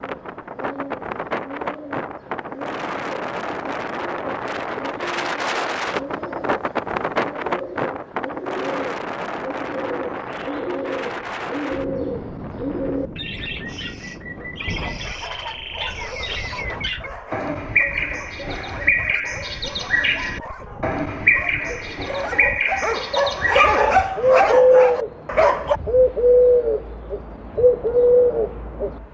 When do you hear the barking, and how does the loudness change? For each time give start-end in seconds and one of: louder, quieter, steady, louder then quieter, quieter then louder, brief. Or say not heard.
14.8-25.8 louder.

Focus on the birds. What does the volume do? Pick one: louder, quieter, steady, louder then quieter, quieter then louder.
louder.